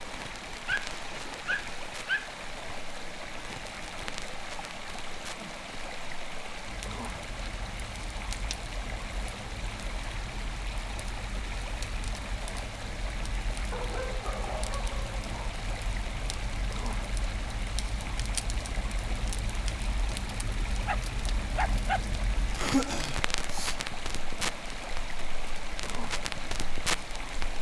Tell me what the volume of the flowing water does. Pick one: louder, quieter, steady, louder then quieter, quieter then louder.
steady.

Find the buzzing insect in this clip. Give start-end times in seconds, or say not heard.
not heard.